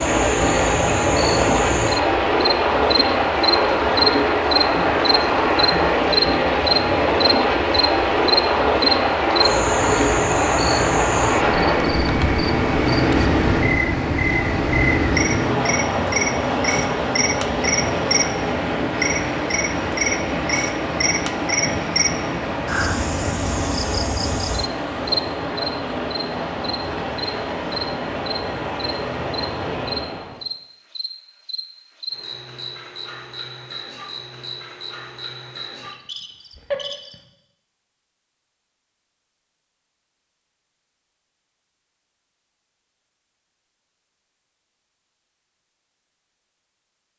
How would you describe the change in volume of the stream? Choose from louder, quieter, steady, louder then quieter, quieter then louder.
quieter.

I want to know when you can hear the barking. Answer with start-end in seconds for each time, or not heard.
not heard.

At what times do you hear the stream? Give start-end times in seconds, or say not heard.
0.0-30.4.